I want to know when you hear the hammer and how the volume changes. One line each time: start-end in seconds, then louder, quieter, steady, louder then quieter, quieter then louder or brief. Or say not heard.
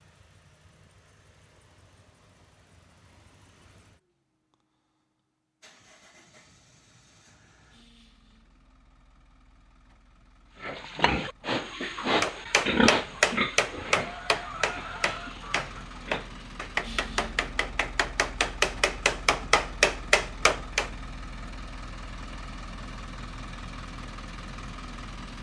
12.2-20.9 quieter then louder.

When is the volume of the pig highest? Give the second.
13 s.